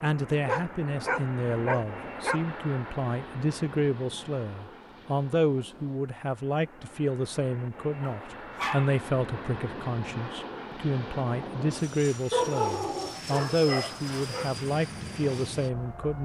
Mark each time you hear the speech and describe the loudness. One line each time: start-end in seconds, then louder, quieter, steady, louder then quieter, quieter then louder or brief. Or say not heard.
0.0-16.2 steady.